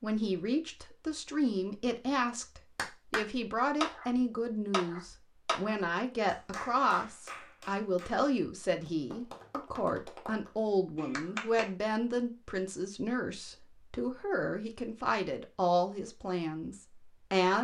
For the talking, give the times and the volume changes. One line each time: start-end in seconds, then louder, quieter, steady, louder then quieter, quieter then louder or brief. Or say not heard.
0.0-17.5 steady.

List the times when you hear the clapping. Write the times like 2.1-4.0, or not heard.
2.8-11.7.